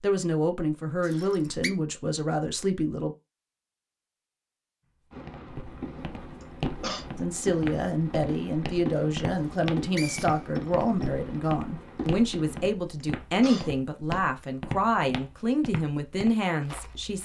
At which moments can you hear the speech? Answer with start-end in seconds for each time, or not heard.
0.0-3.1, 7.2-17.1.